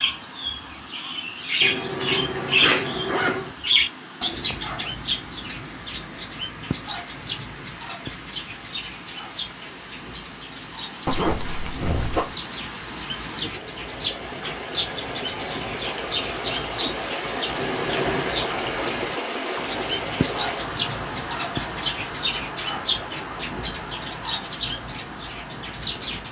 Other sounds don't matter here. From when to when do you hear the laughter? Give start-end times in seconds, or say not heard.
not heard.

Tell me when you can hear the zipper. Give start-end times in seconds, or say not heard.
1.6-3.5, 11.1-12.2, 17.6-18.4.